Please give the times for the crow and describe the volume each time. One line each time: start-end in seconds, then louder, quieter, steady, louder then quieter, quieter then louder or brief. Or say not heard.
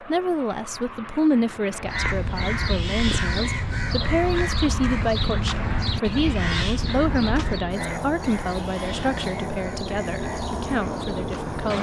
1.8-11.7 quieter.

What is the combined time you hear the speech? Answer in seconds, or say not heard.
12 s.